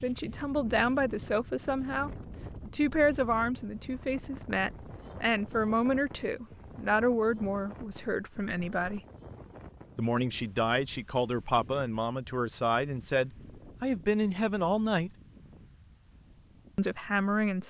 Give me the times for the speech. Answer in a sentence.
The speech can be heard from 0.0 to 9.0 s, from 9.9 to 15.1 s and from 16.8 to 17.6 s.